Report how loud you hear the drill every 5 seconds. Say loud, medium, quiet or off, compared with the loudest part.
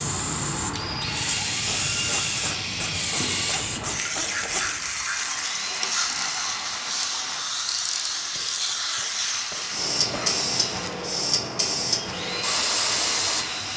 loud, medium, loud.